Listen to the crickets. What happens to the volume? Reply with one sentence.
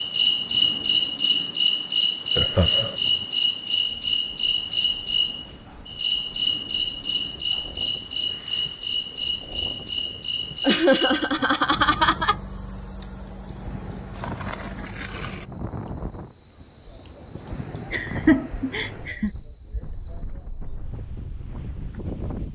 The loudness of the crickets goes down.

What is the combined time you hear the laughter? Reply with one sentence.
You can hear the laughter for 4 seconds altogether.